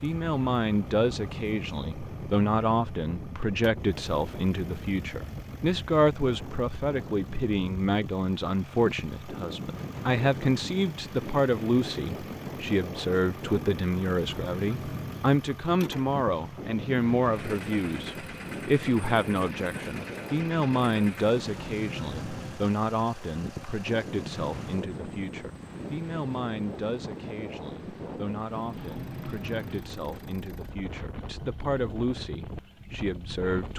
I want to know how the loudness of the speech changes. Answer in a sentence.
The volume of the speech goes down.